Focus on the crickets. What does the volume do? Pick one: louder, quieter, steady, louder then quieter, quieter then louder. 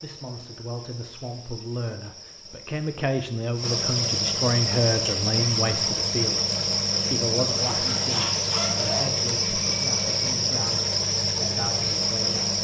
louder.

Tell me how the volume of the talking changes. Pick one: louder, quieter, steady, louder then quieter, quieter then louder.
louder then quieter.